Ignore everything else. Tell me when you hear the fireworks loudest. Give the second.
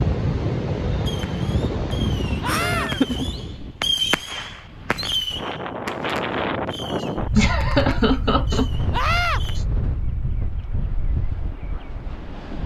4 s.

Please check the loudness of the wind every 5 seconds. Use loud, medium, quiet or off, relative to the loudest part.
loud, loud, medium.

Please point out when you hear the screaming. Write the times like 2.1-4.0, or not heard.
2.4-2.9, 8.9-9.4.